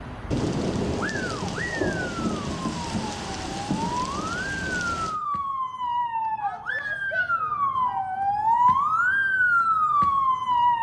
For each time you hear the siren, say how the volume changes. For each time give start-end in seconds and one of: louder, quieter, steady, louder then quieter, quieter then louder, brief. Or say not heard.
0.0-10.7 louder.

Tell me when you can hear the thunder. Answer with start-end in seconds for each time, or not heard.
0.3-5.2.